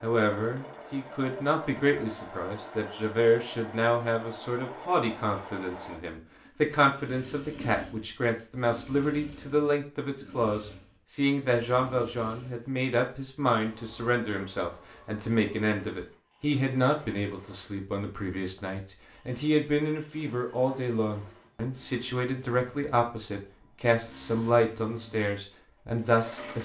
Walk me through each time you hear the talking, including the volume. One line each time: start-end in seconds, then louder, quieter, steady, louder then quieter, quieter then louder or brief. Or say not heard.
0.0-26.6 steady.